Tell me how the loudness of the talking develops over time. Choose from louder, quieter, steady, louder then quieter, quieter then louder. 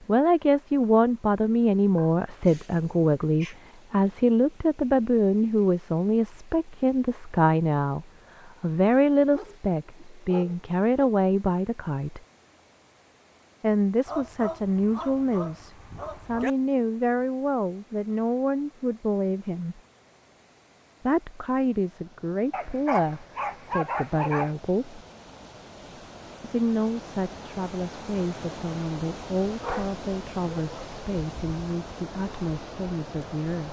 quieter.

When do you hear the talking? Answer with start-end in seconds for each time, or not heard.
0.1-12.2, 13.6-19.8, 21.1-25.0, 26.4-33.6.